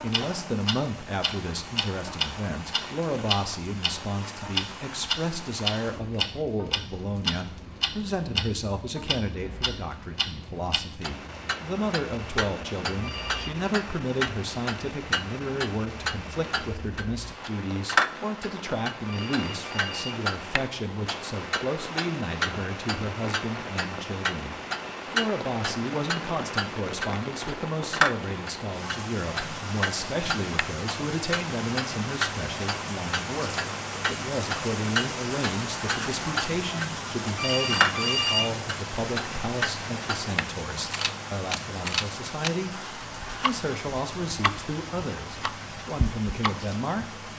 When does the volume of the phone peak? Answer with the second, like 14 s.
38 s.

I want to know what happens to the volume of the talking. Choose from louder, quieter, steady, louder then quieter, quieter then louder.
steady.